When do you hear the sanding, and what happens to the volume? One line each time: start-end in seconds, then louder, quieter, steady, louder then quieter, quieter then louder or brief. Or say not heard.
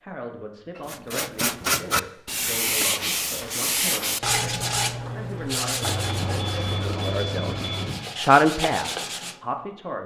0.8-9.4 quieter.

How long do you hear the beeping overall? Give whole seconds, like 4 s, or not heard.
2 s.